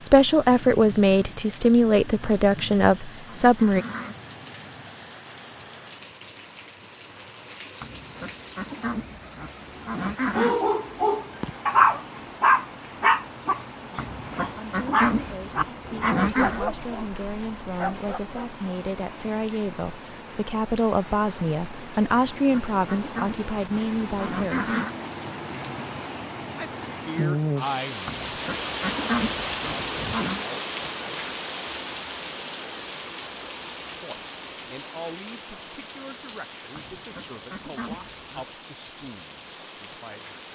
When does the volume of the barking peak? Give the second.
12 s.